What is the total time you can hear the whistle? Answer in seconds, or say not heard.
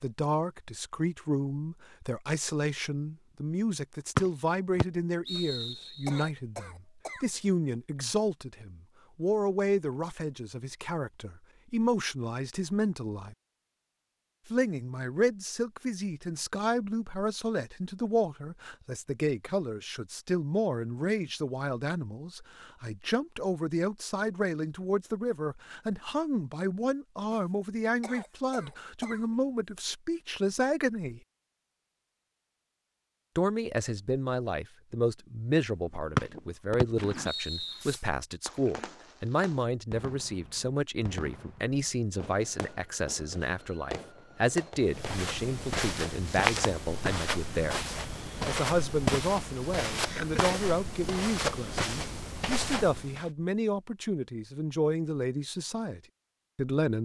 4 s.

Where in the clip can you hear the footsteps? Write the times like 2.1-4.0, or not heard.
44.9-53.3.